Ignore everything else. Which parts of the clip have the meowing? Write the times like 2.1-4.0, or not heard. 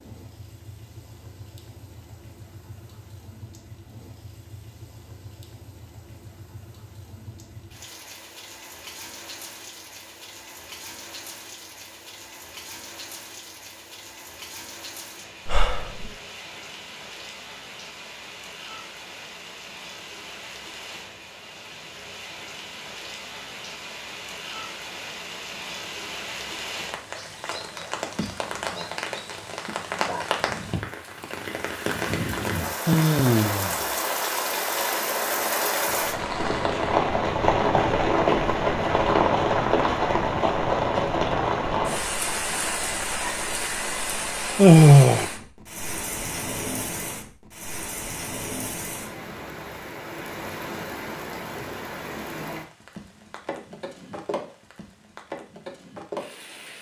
not heard.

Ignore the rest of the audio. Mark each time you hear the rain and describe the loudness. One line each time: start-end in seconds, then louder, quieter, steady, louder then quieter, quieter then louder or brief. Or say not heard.
0.0-56.7 louder then quieter.